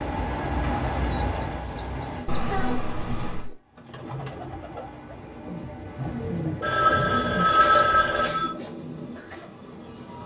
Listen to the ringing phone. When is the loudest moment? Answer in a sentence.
The loudest moment of the ringing phone is at 8 seconds.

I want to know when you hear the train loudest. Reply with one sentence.
The volume of the train peaks at 1 second.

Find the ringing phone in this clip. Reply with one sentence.
You can hear the ringing phone from 2.2 to 3.5 s and from 6.6 to 8.5 s.